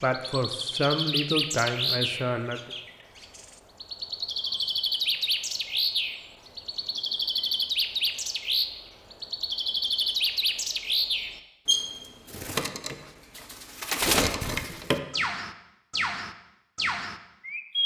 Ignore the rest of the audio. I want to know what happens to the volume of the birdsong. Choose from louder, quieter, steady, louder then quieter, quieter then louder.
steady.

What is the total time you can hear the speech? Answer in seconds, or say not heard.
3 s.